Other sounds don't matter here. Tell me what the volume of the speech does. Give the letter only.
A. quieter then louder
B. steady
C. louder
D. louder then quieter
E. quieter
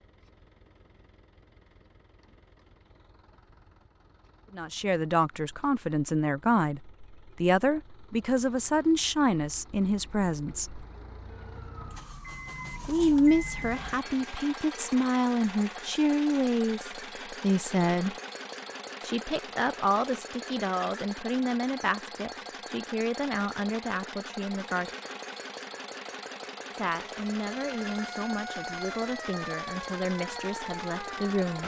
E.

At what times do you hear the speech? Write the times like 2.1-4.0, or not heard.
4.5-10.8, 12.8-18.1, 19.0-24.9, 26.7-31.6.